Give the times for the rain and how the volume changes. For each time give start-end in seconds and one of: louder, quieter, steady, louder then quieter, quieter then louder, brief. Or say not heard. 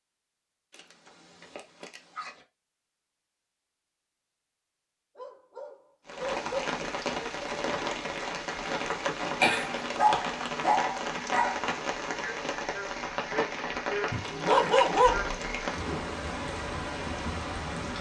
6.0-17.9 steady.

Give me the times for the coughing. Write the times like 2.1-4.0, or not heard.
9.4-9.9.